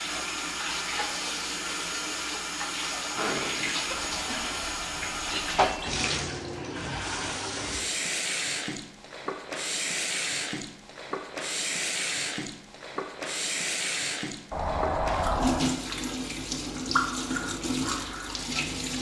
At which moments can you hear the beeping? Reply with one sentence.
The beeping can be heard from 3.9 to 5.9 s and from 14.5 to 15.8 s.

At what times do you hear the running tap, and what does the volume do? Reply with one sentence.
You can hear the running tap from 0.0 to 18.9 s, at a steady volume.